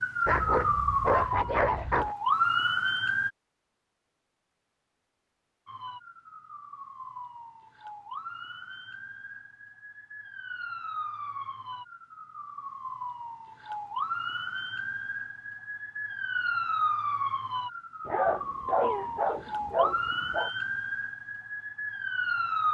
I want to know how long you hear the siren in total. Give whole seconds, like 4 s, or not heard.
20 s.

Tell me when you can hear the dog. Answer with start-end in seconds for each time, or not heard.
0.2-2.1, 18.1-20.5.